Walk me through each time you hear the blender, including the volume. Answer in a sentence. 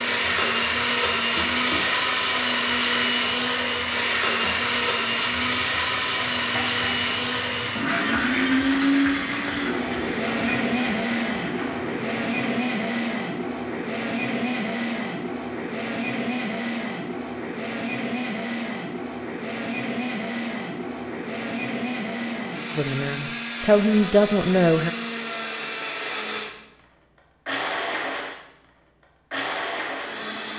The blender can be heard from 0.0 to 26.5 s, getting quieter; briefly from 27.4 to 28.4 s; and briefly from 29.3 to 30.5 s.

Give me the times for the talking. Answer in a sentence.
The talking can be heard from 22.8 to 24.9 s.